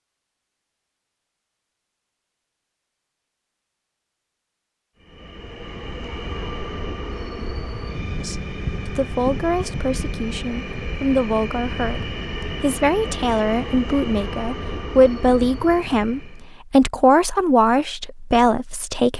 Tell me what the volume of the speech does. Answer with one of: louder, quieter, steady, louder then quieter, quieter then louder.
louder.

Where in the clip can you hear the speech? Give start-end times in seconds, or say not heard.
8.2-19.1.